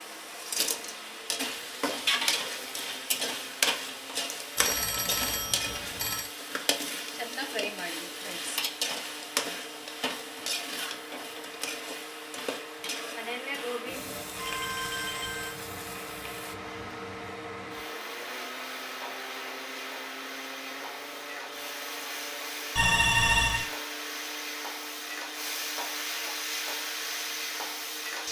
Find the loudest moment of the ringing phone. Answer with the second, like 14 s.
23 s.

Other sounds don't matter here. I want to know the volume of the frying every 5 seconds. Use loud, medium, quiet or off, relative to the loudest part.
loud, loud, medium, medium, medium, loud.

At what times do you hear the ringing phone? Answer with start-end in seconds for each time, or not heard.
4.5-6.3, 14.3-15.6, 22.8-23.7.